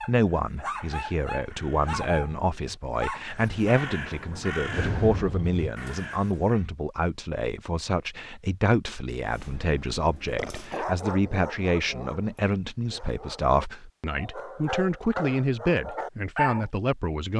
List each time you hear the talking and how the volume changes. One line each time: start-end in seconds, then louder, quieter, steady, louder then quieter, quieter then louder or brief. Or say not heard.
0.0-17.3 steady.